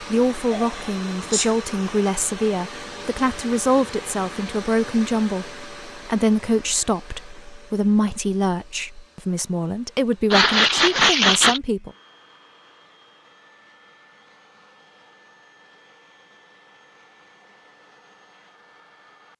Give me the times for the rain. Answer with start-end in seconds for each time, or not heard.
not heard.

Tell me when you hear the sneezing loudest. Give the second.
11 s.